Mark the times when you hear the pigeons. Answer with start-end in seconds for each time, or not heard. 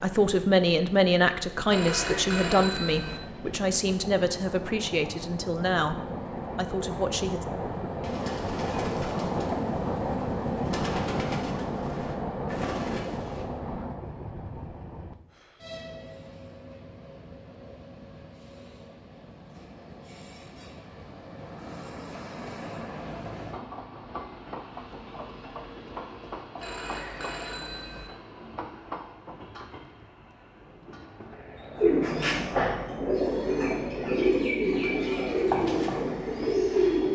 8.0-13.4, 31.8-37.1.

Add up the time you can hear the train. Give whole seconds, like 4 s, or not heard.
37 s.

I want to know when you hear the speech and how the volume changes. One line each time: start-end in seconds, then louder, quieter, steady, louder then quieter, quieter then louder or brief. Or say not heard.
0.0-7.5 quieter.